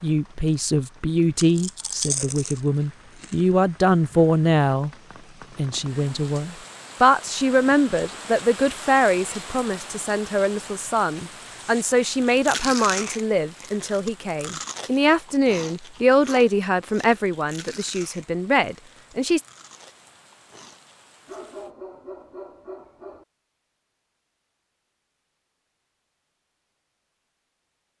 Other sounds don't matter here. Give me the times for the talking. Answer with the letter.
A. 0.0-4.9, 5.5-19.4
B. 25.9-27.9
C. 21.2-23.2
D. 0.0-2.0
A.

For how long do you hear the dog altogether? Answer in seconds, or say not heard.
2 s.